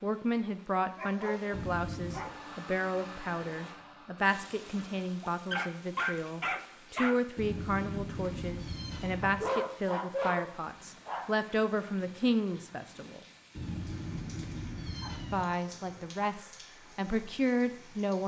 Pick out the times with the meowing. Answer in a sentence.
You can hear the meowing from 1.5 to 2.2 s, from 7.3 to 9.5 s and from 13.6 to 15.4 s.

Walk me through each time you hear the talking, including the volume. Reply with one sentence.
The talking can be heard from 0.0 to 13.2 s, at a steady volume; and briefly from 15.3 to 18.2 s.